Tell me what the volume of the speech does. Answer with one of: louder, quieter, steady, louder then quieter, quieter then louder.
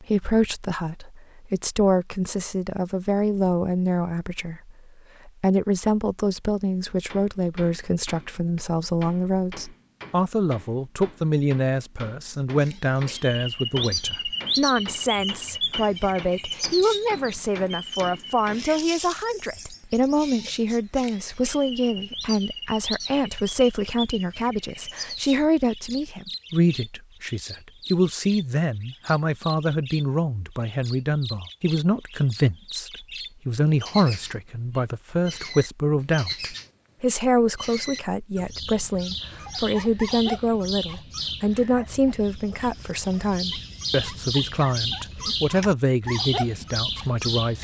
steady.